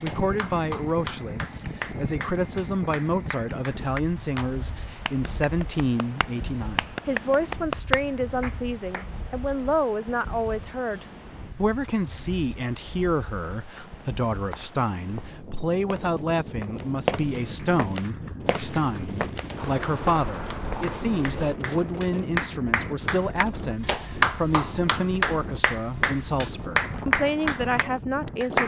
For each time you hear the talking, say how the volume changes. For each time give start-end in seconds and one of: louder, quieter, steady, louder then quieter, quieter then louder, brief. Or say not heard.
0.0-28.6 steady.